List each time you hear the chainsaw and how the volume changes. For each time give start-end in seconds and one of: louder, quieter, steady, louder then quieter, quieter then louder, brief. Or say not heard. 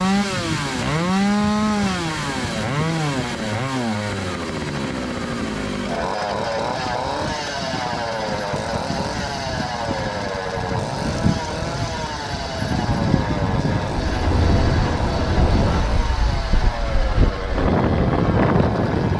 0.0-19.1 quieter.